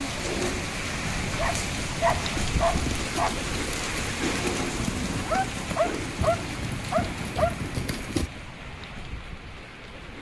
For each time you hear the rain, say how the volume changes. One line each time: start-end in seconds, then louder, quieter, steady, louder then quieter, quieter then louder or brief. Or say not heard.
0.0-10.1 quieter.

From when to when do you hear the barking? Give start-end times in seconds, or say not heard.
1.4-3.4, 5.2-7.5.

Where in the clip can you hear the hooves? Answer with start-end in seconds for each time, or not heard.
1.3-8.3.